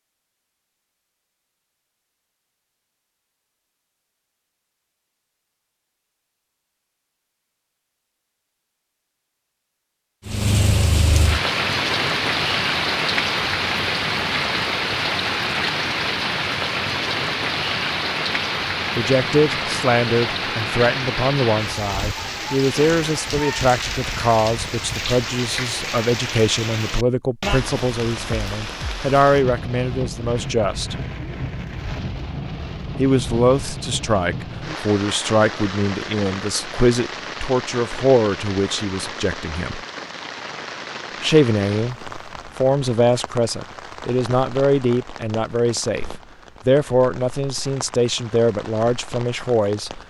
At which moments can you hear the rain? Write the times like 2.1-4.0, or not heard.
10.2-50.0.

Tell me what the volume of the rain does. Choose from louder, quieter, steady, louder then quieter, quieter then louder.
quieter.